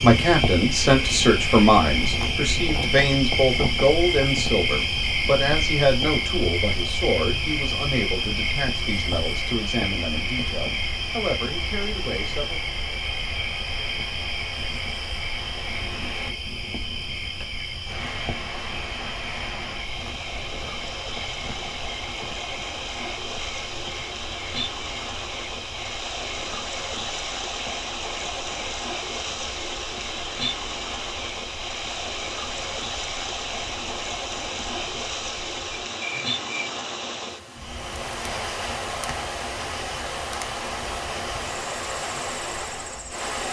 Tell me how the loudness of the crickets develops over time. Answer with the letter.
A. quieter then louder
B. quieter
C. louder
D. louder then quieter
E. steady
B.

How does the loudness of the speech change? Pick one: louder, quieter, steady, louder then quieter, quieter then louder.
quieter.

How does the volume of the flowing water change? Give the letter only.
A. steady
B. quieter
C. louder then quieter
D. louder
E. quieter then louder
D.